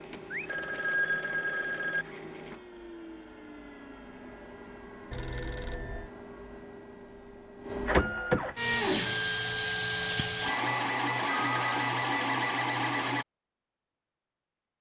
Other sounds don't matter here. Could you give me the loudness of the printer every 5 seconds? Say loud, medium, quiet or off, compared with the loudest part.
quiet, loud, loud.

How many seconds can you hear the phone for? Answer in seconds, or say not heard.
3 s.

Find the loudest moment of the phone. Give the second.
1 s.